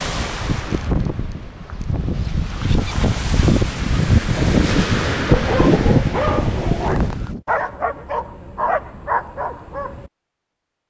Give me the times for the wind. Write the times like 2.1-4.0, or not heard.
0.0-7.4.